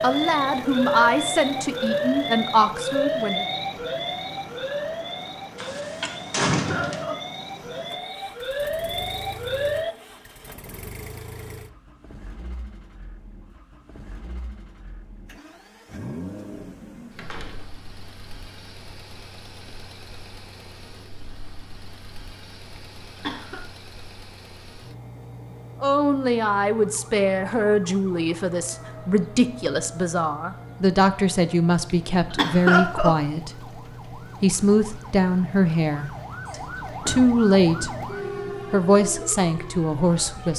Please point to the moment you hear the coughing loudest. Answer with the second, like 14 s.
33 s.